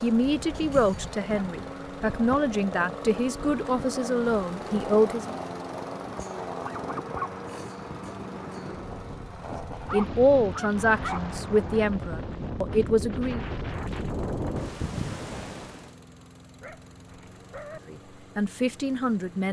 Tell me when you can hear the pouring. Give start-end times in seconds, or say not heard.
not heard.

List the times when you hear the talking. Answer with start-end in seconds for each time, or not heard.
0.0-5.3, 9.9-13.4, 17.9-19.4.